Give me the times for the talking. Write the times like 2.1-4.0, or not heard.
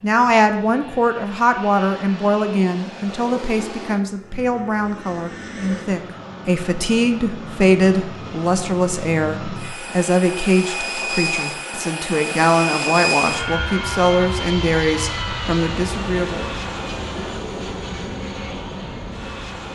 0.0-16.5.